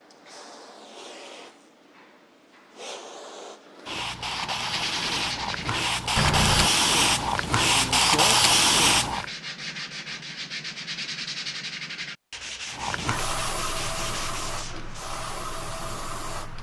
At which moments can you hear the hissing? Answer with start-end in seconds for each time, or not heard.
0.0-9.2, 12.7-16.5.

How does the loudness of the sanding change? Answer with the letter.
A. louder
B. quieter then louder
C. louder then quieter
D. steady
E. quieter
E.